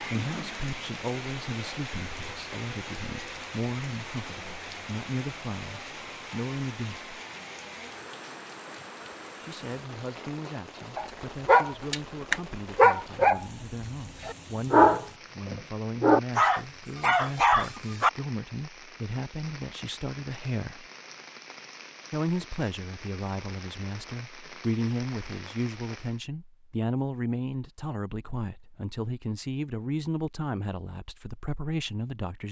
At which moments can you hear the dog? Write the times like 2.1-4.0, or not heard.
10.9-13.4, 14.2-18.1.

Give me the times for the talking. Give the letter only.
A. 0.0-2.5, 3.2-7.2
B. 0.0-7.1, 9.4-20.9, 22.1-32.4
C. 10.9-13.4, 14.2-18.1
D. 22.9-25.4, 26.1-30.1
B.